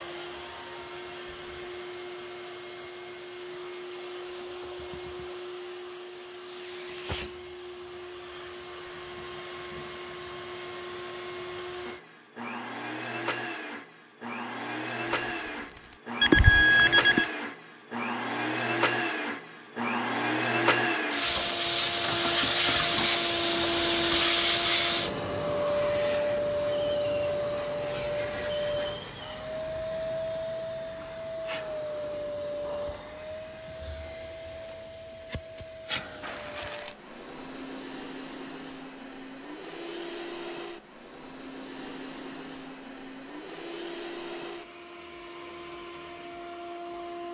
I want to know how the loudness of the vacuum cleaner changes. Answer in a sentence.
The volume of the vacuum cleaner goes up, then down.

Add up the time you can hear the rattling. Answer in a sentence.
The rattling can be heard for 2 seconds in total.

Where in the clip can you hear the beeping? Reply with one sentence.
You can hear the beeping from 16.2 to 17.2 s.